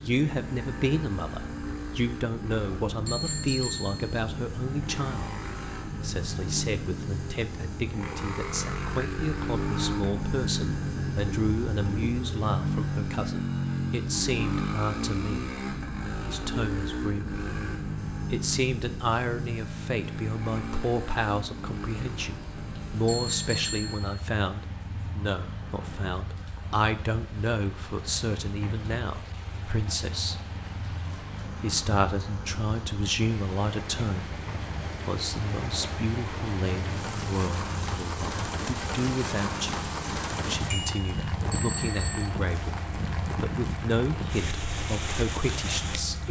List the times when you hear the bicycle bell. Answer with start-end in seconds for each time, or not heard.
3.0-4.2, 23.1-24.2, 40.7-42.2.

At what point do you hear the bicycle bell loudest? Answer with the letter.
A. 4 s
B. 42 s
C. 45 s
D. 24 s
B.